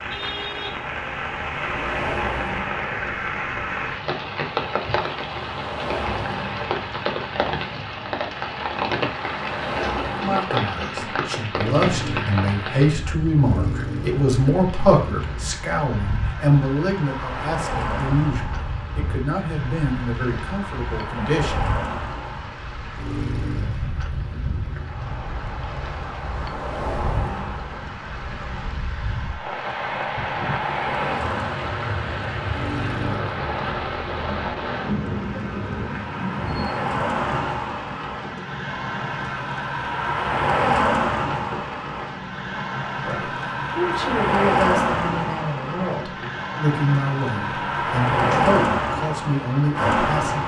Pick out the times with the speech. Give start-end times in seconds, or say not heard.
10.2-21.7, 43.0-50.4.